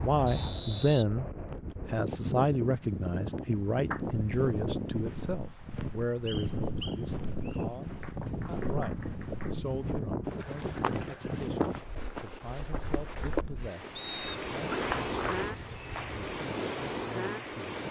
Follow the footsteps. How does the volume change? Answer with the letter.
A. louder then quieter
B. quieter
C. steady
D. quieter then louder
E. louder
E.